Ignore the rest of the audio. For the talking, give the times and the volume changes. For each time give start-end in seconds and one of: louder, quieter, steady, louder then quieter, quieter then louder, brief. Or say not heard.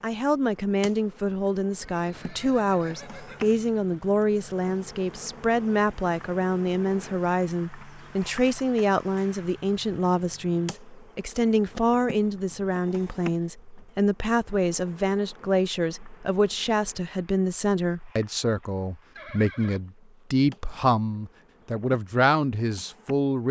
0.0-23.4 steady.